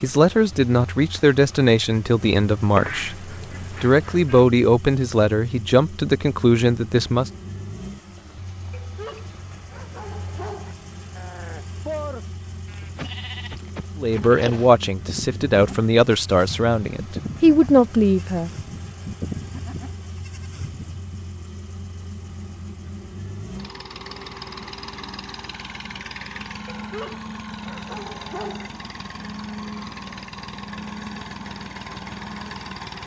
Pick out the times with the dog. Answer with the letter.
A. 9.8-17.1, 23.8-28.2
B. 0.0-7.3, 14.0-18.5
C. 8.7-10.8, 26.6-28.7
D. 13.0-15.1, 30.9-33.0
C.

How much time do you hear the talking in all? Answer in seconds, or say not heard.
12 s.